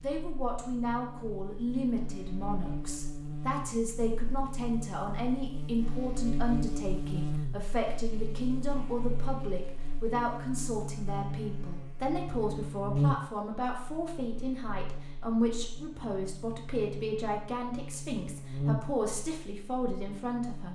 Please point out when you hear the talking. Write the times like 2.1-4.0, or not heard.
0.0-20.6.